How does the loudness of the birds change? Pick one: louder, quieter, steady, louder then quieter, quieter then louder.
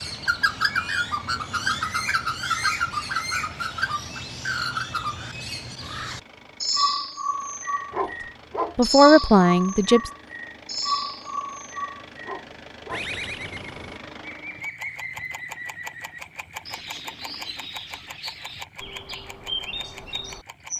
quieter.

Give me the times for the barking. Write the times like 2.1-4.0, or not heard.
7.9-8.8, 12.2-13.1.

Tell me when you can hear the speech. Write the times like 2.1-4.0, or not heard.
8.8-10.1.